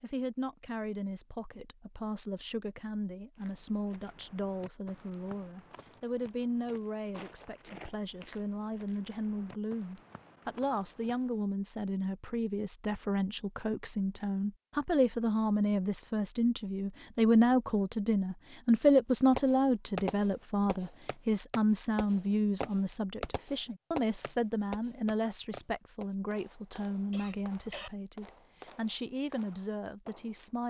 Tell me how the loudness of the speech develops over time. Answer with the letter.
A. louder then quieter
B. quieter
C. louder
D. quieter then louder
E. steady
A.